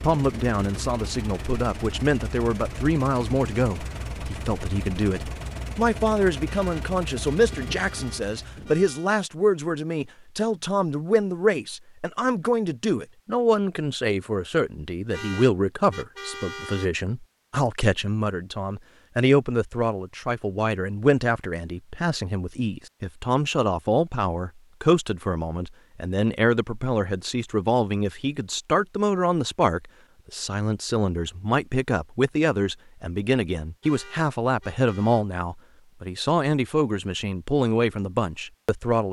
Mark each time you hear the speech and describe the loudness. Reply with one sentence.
You can hear the speech from 0.0 to 39.0 s, at a steady volume.